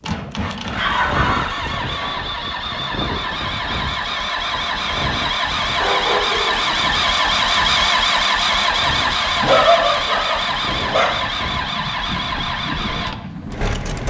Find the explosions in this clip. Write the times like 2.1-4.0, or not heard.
not heard.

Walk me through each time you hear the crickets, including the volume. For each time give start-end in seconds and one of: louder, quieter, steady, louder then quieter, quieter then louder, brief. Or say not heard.
not heard.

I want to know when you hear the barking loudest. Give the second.
10 s.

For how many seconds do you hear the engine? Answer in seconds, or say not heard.
14 s.